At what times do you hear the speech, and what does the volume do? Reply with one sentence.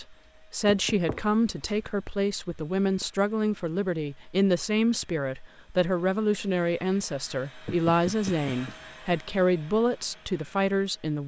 The speech can be heard from 0.0 to 11.2 s, at a steady volume.